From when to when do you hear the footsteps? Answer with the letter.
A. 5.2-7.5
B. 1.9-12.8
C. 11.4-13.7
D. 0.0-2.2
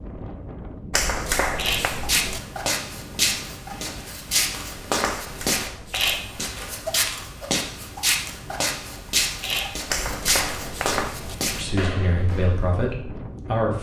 B.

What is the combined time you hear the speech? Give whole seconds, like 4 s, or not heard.
2 s.